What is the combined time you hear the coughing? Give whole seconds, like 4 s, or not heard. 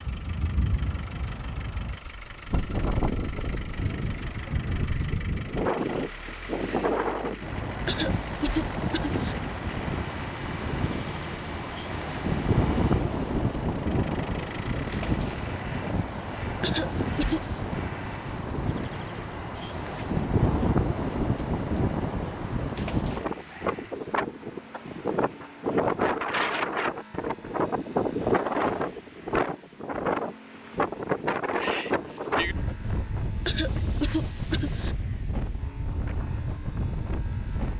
4 s.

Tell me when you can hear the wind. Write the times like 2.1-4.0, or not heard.
0.0-37.7.